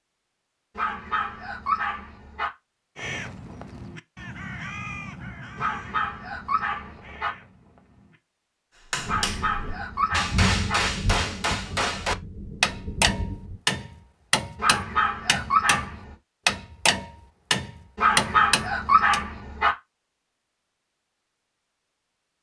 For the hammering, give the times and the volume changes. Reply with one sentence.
You can hear the hammering from 8.9 to 19.2 s, at a steady volume.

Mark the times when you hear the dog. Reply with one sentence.
You can hear the dog from 0.8 to 2.5 s, from 5.5 to 7.3 s, from 9.1 to 10.8 s, from 14.6 to 16.1 s and from 17.9 to 19.7 s.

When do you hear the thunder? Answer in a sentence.
You can hear the thunder from 8.9 to 13.6 s.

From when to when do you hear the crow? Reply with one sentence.
You can hear the crow from 3.0 to 8.2 s.